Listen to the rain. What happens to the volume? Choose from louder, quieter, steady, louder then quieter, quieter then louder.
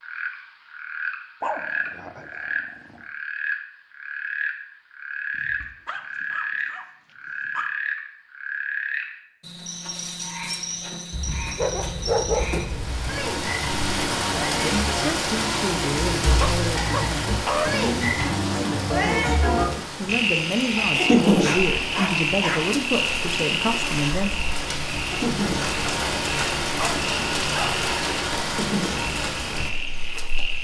quieter then louder.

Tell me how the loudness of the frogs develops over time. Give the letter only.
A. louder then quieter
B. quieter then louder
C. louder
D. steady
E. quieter
A.